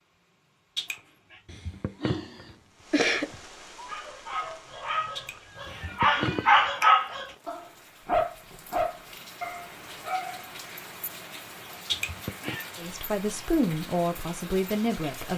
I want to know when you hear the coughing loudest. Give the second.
3 s.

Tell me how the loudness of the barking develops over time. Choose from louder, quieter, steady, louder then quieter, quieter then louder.
louder then quieter.